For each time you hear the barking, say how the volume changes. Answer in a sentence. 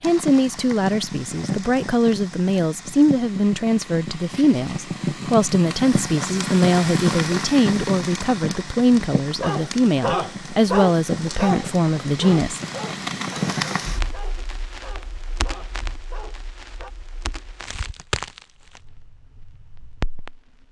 The barking can be heard from 9.4 to 16.9 s, getting quieter.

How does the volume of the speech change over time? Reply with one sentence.
The loudness of the speech stays about the same.